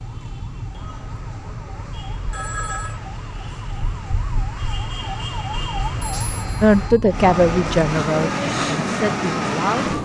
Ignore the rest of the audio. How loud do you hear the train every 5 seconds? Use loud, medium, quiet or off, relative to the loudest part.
quiet, loud.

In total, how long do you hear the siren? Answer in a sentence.
You can hear the siren for 10 seconds altogether.